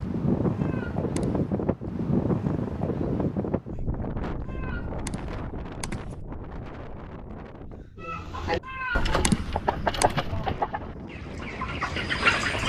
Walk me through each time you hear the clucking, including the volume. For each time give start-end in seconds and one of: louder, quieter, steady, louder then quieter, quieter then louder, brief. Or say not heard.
8.0-12.6 quieter then louder.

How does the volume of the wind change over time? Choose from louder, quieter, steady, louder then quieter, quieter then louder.
quieter then louder.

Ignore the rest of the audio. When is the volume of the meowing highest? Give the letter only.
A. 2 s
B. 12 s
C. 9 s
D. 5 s
C.